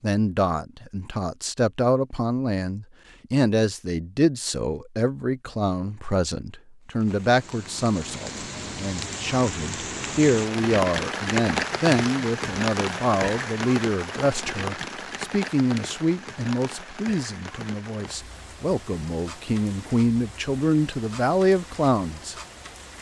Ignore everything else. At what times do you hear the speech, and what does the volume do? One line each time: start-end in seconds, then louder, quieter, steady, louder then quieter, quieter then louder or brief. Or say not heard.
0.0-22.4 steady.